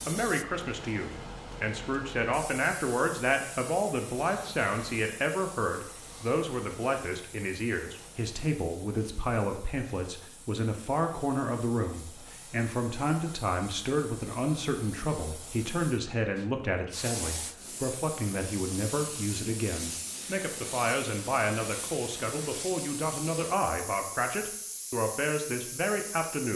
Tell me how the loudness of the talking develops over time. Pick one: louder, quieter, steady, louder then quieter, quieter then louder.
steady.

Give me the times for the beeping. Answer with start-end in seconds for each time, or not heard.
not heard.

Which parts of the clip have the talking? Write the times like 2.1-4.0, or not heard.
0.0-26.5.